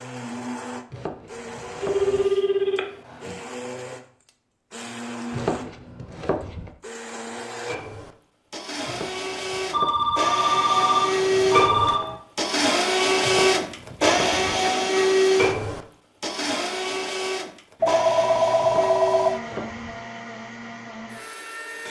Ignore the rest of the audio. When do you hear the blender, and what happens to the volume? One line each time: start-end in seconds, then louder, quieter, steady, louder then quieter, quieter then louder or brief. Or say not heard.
0.0-21.8 louder then quieter.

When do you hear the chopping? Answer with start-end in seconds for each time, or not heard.
0.9-2.2, 5.3-6.7, 8.8-10.2, 13.2-14.5, 18.6-19.9.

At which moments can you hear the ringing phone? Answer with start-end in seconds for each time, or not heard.
1.8-3.4, 9.7-12.2, 17.8-19.3.